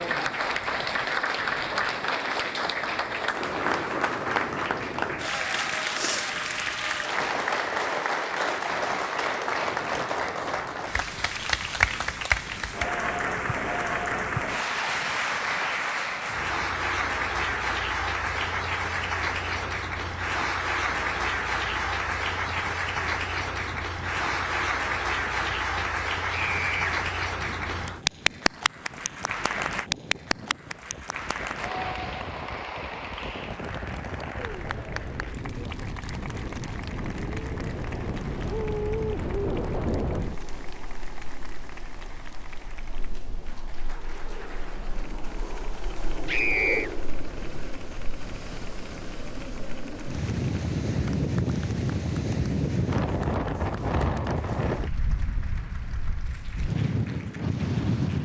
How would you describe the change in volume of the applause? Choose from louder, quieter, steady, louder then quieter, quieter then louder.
quieter.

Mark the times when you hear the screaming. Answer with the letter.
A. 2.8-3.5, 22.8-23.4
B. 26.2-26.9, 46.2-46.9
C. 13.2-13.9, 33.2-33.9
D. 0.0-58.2
B.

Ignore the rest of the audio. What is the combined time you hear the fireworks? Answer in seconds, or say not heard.
not heard.